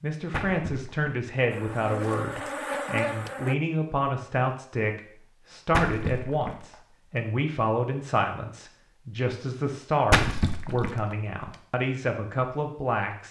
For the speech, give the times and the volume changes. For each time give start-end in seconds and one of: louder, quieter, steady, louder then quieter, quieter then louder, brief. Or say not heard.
0.0-13.2 steady.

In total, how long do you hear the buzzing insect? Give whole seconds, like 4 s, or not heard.
2 s.